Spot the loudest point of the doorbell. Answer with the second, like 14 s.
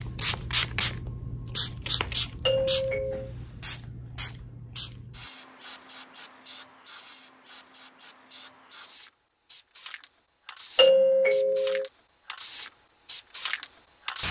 11 s.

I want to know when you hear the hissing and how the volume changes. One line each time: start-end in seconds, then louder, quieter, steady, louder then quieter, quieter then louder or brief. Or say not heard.
0.0-14.2 quieter then louder.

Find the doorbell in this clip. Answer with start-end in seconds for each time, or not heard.
2.5-3.3, 10.8-11.8.